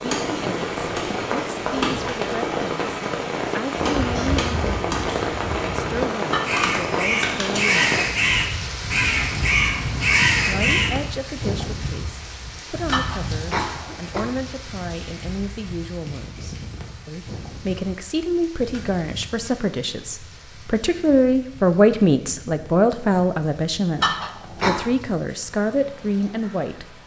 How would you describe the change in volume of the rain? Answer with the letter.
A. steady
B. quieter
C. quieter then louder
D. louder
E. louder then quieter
B.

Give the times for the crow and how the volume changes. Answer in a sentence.
You can hear the crow from 3.8 to 10.9 s, getting louder.